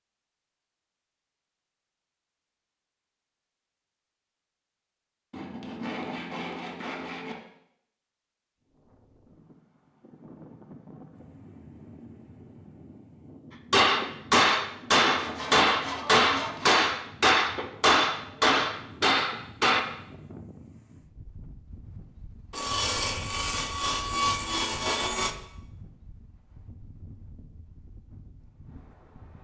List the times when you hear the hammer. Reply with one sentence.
You can hear the hammer from 13.7 to 19.9 s.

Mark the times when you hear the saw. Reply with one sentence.
The saw can be heard from 5.3 to 7.3 s, from 15.2 to 16.9 s and from 22.5 to 25.4 s.